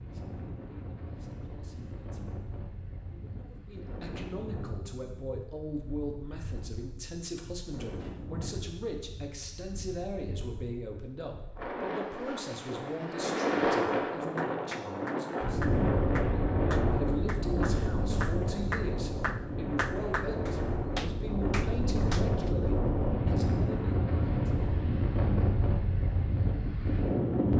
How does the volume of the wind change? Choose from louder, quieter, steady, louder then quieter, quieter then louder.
louder.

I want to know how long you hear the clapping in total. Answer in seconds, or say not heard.
8 s.